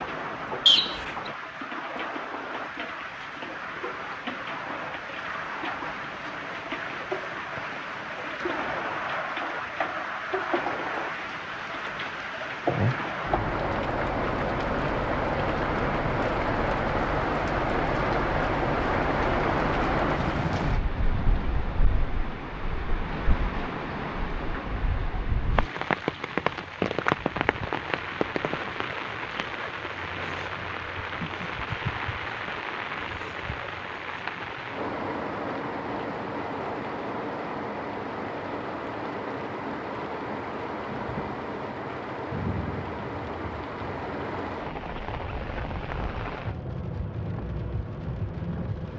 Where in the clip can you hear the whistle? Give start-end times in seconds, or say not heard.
0.7-1.3.